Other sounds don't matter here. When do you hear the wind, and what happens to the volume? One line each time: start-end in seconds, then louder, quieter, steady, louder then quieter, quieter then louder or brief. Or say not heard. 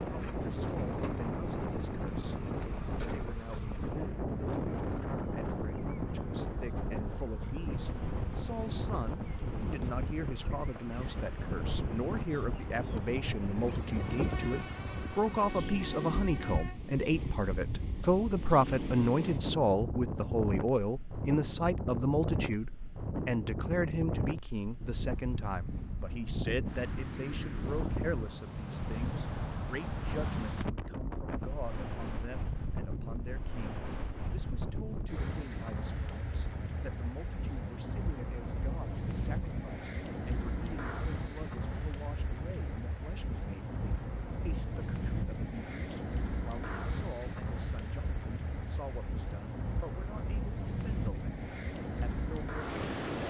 0.0-53.2 steady.